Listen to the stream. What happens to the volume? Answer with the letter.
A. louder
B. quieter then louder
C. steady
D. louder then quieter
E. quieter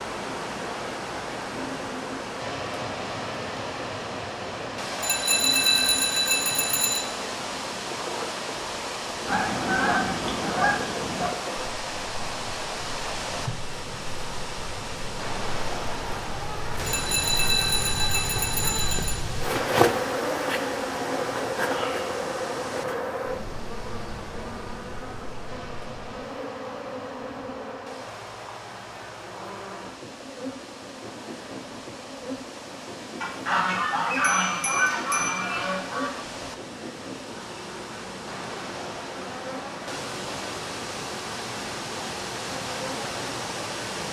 B.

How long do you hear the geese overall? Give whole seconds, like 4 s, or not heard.
5 s.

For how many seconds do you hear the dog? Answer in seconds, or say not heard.
not heard.